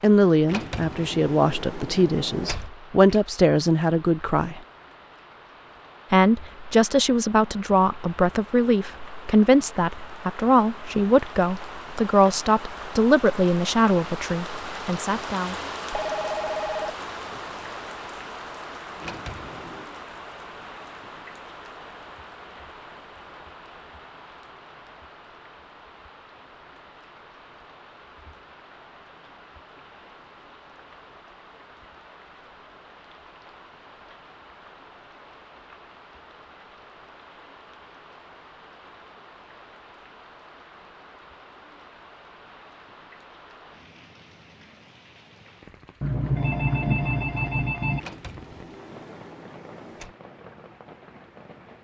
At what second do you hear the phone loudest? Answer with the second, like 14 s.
47 s.